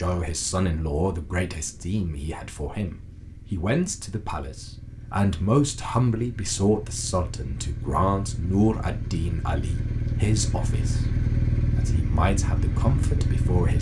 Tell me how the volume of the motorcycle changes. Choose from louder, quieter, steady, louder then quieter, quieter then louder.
louder.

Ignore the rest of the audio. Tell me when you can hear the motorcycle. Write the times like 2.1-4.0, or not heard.
0.2-13.7.